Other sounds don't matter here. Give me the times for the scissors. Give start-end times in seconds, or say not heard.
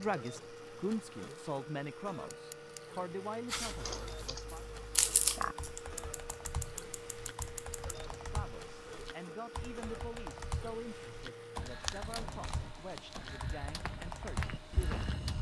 2.3-2.8, 6.0-7.8, 12.0-12.8.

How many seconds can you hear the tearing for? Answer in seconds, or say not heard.
4 s.